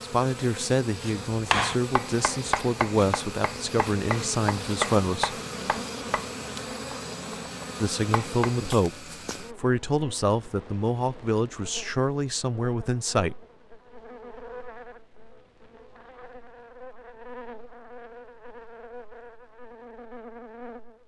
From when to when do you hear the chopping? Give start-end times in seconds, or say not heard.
1.0-8.8.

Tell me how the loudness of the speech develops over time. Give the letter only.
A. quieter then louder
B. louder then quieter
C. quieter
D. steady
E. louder
D.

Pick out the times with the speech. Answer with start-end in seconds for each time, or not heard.
0.0-5.3, 7.8-13.3.